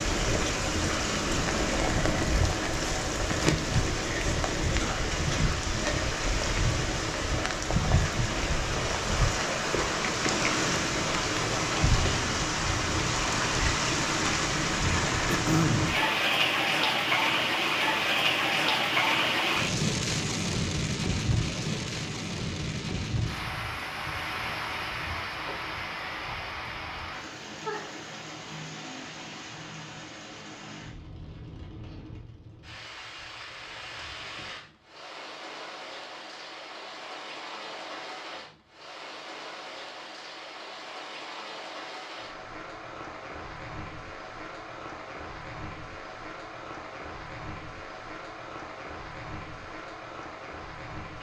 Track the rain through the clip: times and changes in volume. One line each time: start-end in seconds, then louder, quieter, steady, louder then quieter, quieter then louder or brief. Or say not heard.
0.0-51.1 quieter.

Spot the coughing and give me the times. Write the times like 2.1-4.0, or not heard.
15.2-15.9.